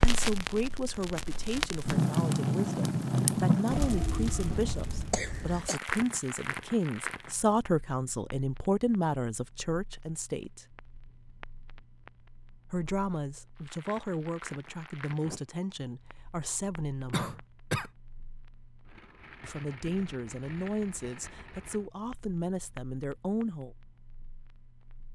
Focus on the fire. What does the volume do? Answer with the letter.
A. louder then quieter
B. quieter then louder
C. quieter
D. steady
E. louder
C.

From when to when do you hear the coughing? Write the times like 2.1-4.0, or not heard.
5.1-5.8, 17.1-17.9.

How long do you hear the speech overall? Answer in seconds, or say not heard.
20 s.